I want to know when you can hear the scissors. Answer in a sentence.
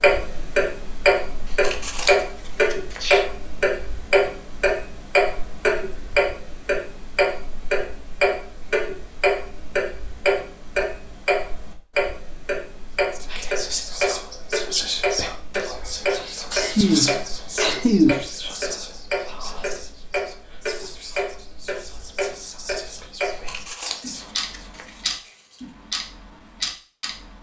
The scissors can be heard from 1.4 to 3.2 s and from 23.3 to 25.6 s.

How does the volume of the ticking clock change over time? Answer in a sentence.
The loudness of the ticking clock goes down.